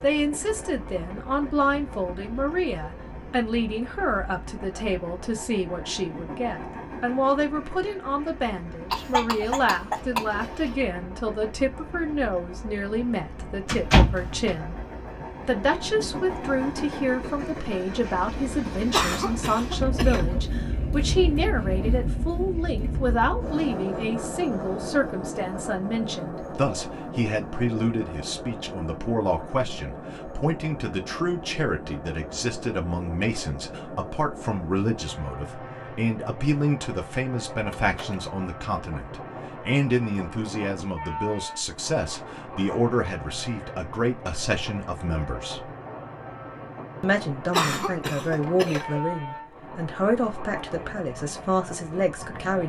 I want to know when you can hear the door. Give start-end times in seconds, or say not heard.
13.7-14.6, 37.6-38.2.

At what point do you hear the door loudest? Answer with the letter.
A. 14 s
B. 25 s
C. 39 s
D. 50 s
A.